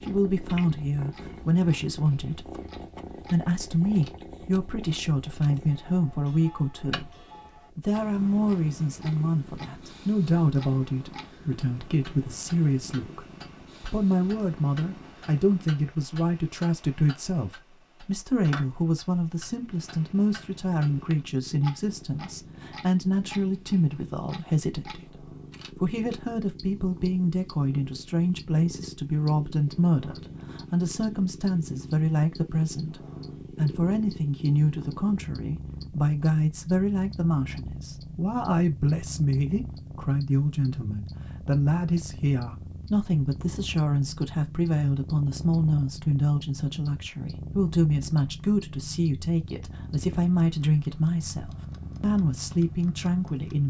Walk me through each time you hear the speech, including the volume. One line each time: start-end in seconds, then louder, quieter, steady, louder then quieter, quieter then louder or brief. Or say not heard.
0.0-53.6 steady.